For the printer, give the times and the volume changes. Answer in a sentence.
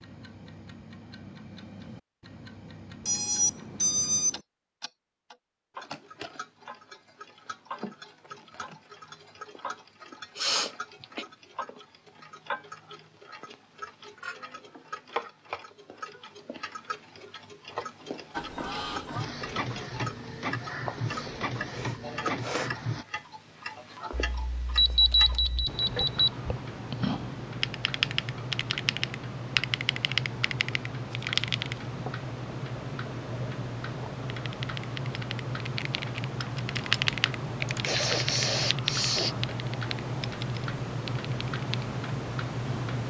The printer can be heard from 18.3 to 23.1 s, at a steady volume.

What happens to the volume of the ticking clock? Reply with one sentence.
The loudness of the ticking clock goes up.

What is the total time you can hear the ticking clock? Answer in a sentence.
You can hear the ticking clock for 43 seconds altogether.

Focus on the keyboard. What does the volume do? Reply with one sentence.
The loudness of the keyboard goes up, then down.